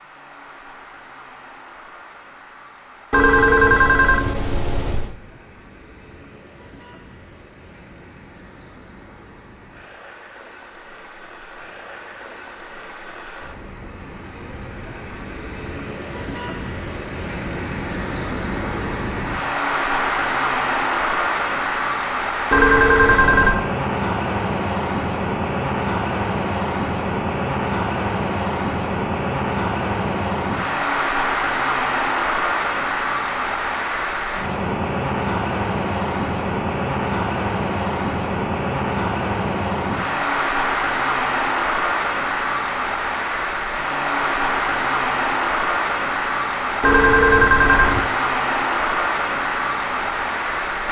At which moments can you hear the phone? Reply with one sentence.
The phone can be heard from 3.1 to 5.2 s, from 22.5 to 23.6 s and from 46.8 to 48.0 s.